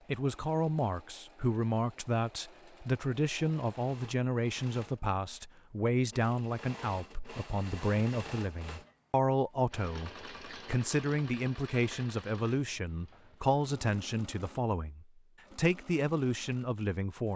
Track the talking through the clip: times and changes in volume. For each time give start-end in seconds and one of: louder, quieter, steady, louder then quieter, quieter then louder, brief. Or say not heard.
0.1-17.3 steady.